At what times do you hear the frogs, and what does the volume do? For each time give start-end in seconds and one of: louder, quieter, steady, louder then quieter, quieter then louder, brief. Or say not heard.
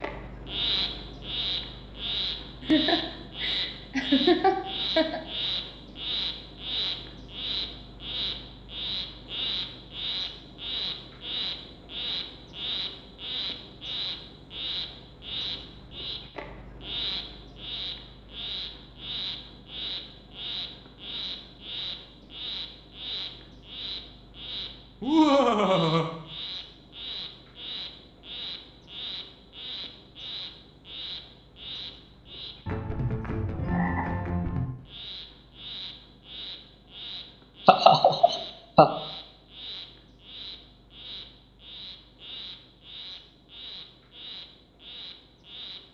0.0-45.8 quieter.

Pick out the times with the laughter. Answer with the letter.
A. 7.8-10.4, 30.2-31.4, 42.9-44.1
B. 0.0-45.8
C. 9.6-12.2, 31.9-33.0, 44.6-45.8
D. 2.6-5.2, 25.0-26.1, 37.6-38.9
D.